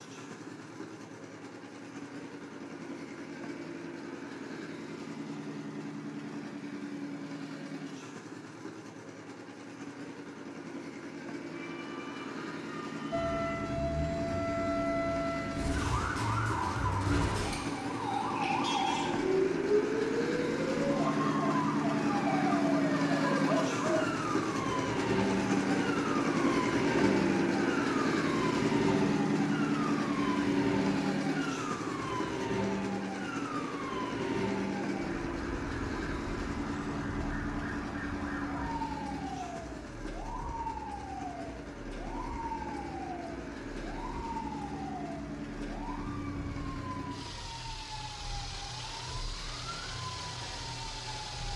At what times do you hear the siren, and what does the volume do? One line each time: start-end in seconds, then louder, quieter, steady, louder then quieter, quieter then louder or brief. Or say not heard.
13.1-51.5 quieter.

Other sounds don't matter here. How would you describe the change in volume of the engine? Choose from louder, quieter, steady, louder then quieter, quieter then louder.
louder then quieter.